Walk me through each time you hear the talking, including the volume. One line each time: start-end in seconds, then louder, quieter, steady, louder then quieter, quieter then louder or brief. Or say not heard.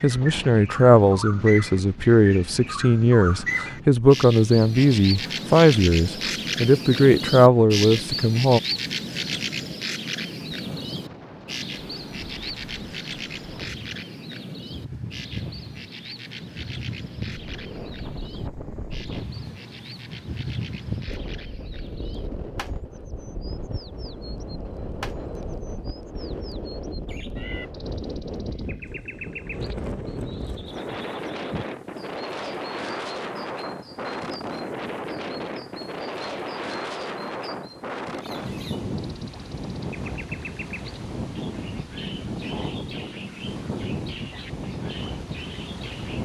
0.0-8.6 steady.